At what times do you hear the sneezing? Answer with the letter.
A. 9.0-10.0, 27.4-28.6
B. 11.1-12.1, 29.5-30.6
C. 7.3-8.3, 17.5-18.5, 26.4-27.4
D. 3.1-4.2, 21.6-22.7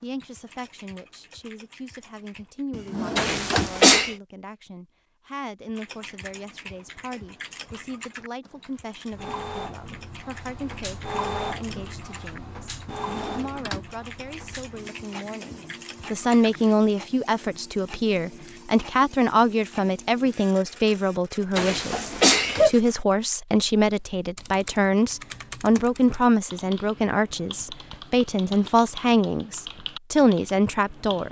D.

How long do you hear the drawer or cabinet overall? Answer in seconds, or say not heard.
3 s.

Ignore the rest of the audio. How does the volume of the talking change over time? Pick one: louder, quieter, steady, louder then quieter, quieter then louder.
louder.